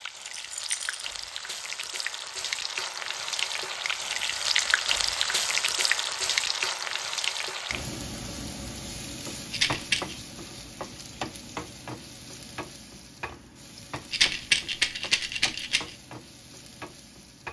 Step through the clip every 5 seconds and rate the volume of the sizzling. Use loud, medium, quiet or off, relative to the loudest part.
loud, loud, medium, quiet.